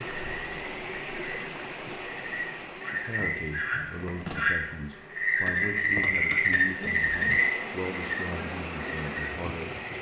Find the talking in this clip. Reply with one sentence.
The talking can be heard from 2.9 to 9.7 s.